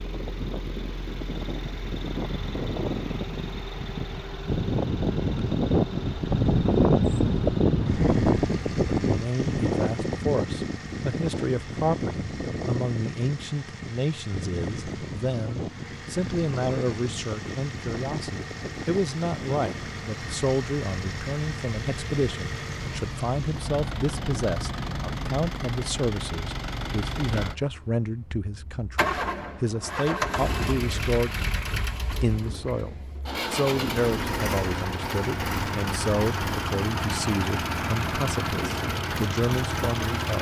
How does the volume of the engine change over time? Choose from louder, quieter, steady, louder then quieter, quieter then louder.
louder.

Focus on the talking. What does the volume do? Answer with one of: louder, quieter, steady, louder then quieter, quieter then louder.
steady.